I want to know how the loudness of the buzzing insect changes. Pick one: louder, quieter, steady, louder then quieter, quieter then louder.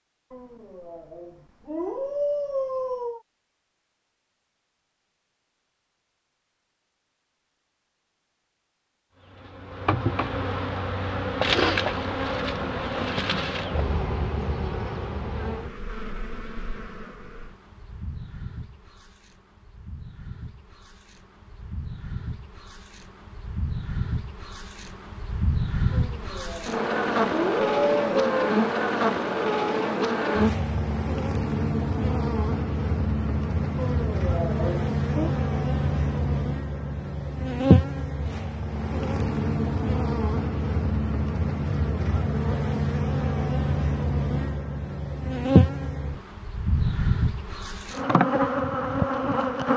quieter then louder.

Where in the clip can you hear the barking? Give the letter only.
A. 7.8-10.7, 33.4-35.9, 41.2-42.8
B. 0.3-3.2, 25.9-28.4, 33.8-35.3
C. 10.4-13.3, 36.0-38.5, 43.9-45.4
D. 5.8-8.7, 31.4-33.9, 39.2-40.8
B.